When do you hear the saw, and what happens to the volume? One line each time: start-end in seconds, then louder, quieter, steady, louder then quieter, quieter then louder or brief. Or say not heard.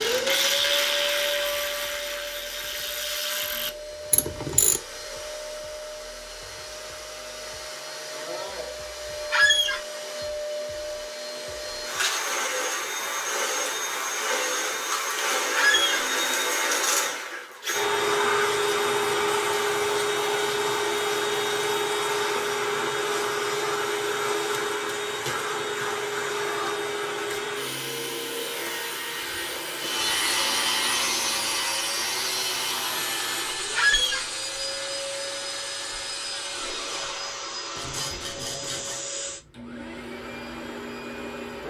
29.8-39.0 quieter.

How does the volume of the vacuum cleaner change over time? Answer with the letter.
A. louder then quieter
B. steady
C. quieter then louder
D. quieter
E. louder
A.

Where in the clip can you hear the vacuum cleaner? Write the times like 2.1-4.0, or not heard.
0.0-41.6.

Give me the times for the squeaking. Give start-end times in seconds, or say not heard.
9.3-9.8, 15.6-16.1, 33.8-34.2.